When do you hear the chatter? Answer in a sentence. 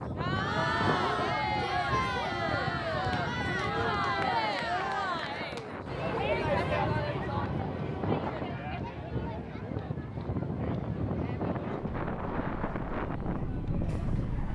The chatter can be heard from 0.0 to 14.4 s.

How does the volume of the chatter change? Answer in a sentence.
The volume of the chatter goes down.